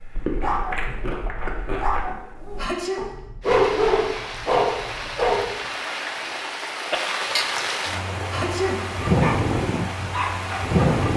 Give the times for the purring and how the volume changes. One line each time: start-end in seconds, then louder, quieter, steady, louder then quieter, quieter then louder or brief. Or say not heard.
not heard.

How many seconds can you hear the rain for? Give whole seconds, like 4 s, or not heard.
8 s.